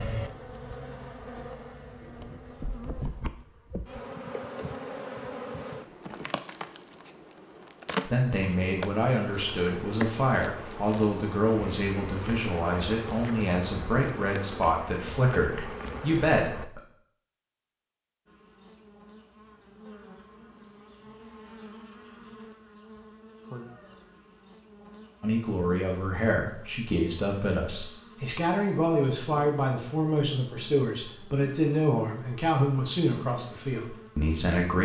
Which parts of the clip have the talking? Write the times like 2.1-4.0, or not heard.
8.1-16.8, 25.2-34.8.